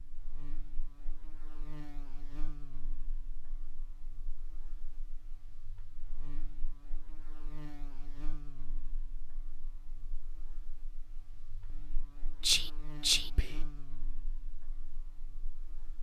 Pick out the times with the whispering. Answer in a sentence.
The whispering can be heard from 12.4 to 13.7 s.